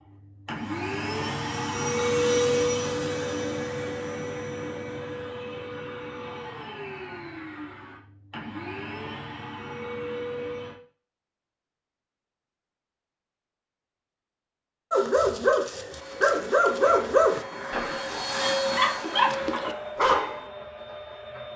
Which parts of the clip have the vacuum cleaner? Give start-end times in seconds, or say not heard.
0.0-10.8, 15.8-21.5.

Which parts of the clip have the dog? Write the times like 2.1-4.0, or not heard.
14.9-20.4.